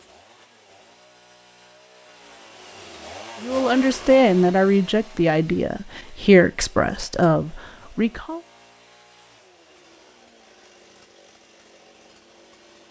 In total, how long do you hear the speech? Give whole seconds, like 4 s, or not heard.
5 s.